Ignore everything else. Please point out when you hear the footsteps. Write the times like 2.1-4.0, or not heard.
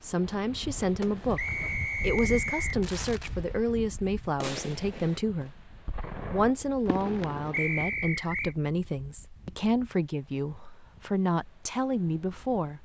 not heard.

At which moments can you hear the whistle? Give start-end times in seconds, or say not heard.
1.4-2.8, 7.5-8.6.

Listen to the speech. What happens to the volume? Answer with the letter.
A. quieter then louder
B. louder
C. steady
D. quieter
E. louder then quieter
C.